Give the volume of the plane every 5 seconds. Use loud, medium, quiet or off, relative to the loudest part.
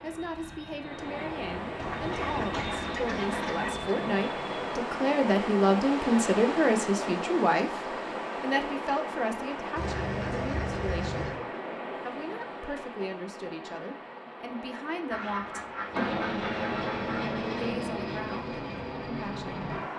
medium, off, off, loud.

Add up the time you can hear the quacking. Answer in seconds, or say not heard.
6 s.